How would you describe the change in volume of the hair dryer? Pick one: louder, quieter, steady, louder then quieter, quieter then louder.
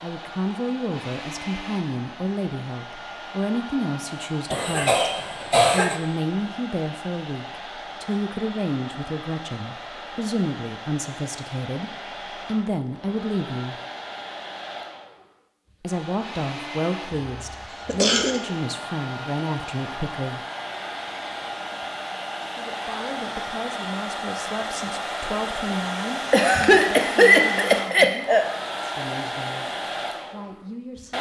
louder.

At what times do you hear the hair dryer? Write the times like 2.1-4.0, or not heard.
0.0-31.1.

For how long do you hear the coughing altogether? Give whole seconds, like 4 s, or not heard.
4 s.